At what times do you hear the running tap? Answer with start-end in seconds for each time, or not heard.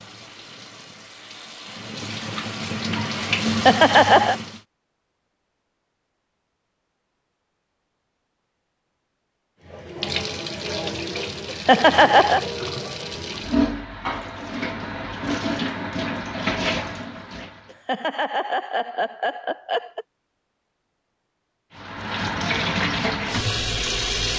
0.0-4.6, 9.7-17.7, 21.8-24.3.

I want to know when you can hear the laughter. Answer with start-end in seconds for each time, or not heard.
3.5-4.3, 11.4-12.4, 17.7-20.1.